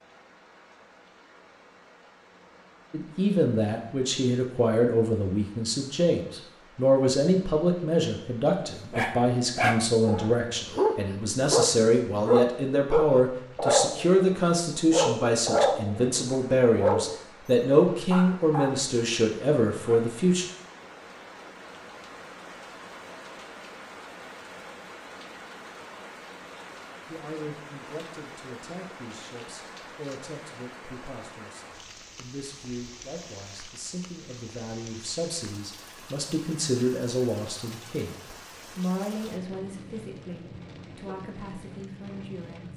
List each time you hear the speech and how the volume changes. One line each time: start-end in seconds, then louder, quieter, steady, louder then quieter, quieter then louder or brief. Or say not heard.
2.9-20.4 steady
27.1-42.7 louder then quieter.